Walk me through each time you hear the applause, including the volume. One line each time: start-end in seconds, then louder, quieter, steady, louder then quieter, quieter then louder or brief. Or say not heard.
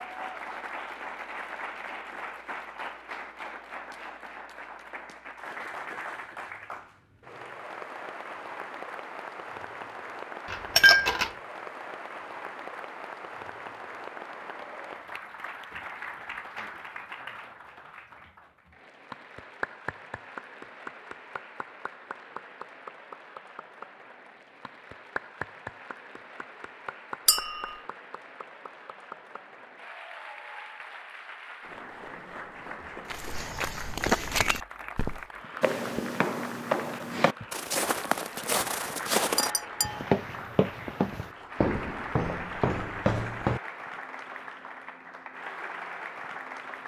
0.0-46.8 steady.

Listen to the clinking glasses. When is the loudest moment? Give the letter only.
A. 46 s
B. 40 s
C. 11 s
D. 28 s
C.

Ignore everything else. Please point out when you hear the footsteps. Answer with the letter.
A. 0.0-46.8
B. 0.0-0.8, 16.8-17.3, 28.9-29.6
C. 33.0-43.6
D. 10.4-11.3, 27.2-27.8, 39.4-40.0
C.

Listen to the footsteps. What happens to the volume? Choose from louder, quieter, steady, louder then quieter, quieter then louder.
steady.